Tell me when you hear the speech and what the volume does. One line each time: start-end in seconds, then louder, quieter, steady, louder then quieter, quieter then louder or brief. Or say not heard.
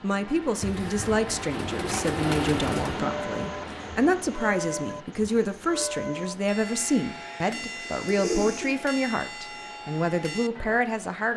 0.0-11.3 steady.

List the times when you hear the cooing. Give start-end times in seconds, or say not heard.
0.6-3.0, 7.8-8.9.